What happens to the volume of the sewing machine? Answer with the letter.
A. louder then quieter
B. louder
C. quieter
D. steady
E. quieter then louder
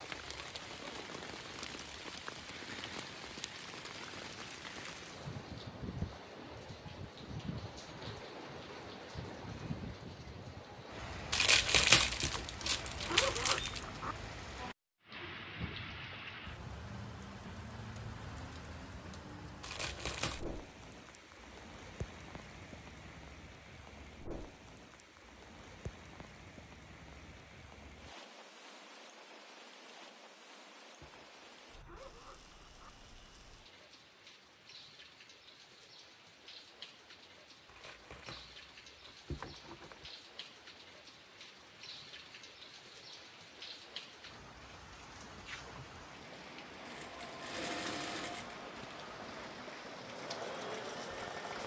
E.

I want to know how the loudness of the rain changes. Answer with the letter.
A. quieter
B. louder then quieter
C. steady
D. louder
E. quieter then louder
E.